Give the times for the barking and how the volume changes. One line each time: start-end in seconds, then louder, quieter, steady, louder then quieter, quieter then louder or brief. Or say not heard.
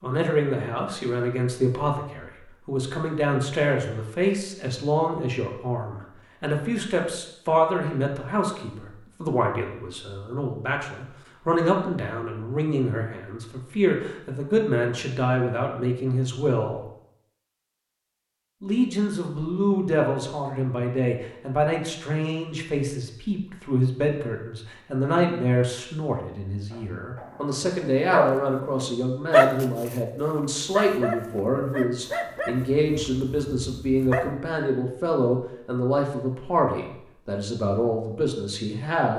26.7-34.4 louder then quieter.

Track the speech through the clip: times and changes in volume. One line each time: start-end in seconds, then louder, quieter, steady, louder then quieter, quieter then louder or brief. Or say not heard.
0.0-16.9 steady
18.6-39.1 steady.